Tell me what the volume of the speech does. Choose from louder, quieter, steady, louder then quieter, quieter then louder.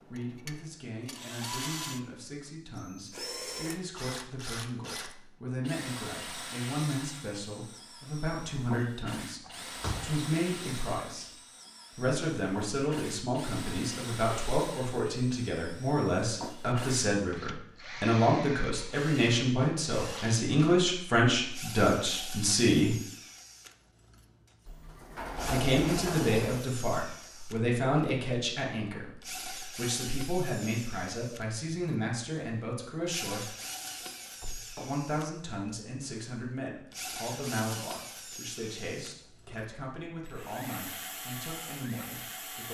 louder then quieter.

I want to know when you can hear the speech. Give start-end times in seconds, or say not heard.
0.1-11.3, 11.9-22.9, 25.4-33.5, 34.8-42.6.